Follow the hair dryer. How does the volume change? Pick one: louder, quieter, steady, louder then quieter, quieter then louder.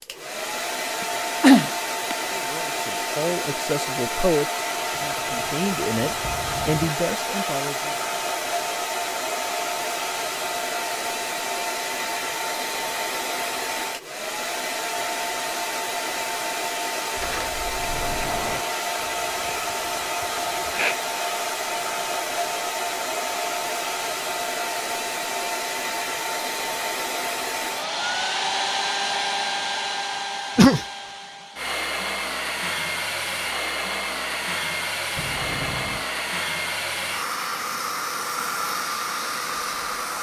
steady.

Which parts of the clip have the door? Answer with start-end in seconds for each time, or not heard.
5.0-6.8, 17.1-18.6, 35.1-36.0.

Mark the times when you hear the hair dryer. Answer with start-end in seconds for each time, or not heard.
0.0-40.1.